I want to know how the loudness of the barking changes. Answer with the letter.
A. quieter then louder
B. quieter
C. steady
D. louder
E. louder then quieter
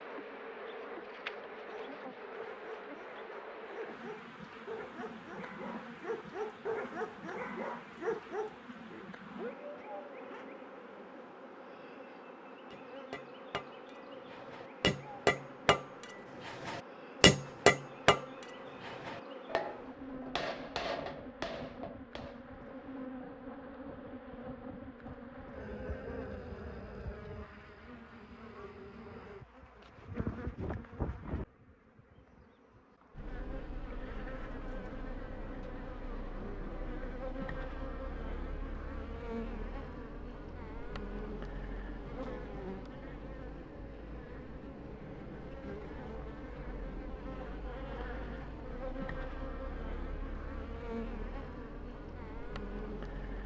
E.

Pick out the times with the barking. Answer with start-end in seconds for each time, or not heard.
1.5-10.6.